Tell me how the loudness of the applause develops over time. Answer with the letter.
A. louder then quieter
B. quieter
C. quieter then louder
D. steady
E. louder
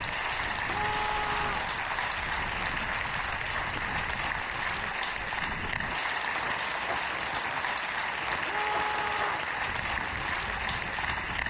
D.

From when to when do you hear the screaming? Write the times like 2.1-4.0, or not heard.
0.7-1.8, 8.4-9.5.